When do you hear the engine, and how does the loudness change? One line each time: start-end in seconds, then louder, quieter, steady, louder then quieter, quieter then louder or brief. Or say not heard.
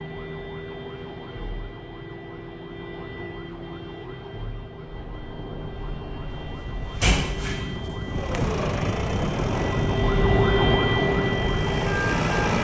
8.1-12.5 quieter then louder.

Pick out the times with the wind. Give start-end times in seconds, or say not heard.
4.7-12.3.